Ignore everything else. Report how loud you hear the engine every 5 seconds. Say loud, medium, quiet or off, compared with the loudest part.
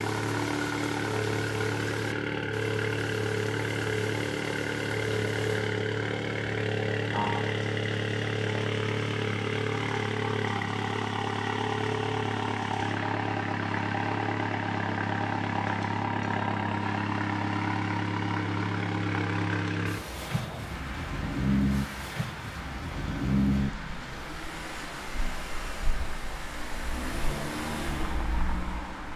loud, loud, loud, loud, loud, medium.